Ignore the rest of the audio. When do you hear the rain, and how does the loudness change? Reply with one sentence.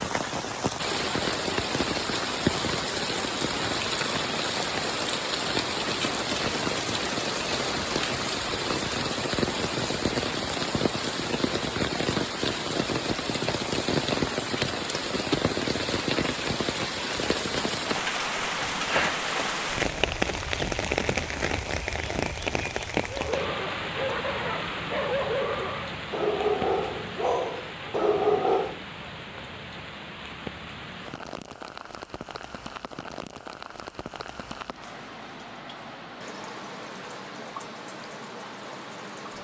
The rain can be heard from 0.0 to 39.3 s, getting quieter.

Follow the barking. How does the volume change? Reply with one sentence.
The loudness of the barking goes up.